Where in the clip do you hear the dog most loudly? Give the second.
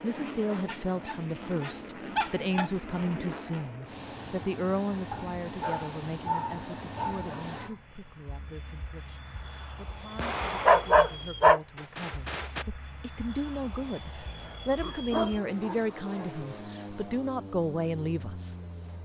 11 s.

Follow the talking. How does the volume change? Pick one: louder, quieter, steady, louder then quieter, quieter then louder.
quieter then louder.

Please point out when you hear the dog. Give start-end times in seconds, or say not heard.
0.7-2.7, 5.1-7.8, 10.7-12.7, 14.4-16.8.